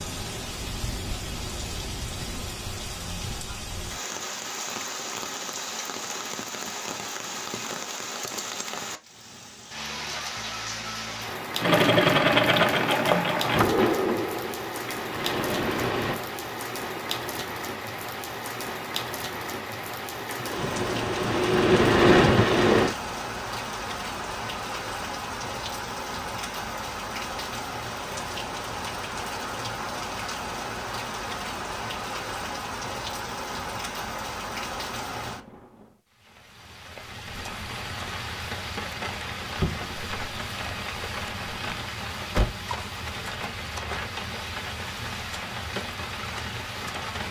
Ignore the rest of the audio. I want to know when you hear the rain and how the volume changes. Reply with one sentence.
You can hear the rain from 0.0 to 47.2 s, at a steady volume.